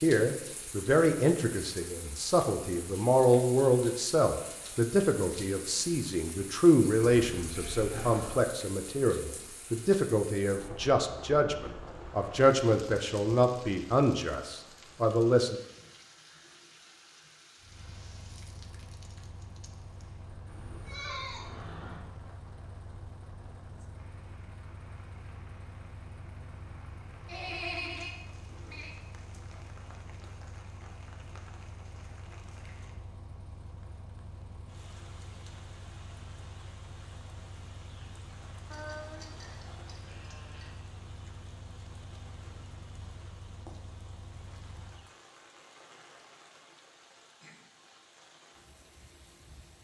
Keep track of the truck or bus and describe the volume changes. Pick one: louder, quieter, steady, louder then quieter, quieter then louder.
steady.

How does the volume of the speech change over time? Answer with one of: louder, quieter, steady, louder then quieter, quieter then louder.
steady.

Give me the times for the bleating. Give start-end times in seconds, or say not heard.
7.2-8.5, 20.4-22.0, 27.2-28.9, 38.7-40.7.